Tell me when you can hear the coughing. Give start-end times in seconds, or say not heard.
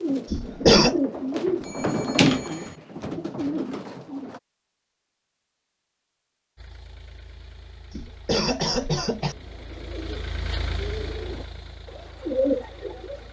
0.3-0.9, 7.9-9.3.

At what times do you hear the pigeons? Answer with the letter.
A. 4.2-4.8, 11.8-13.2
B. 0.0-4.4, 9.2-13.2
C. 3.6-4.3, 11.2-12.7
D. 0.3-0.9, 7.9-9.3
B.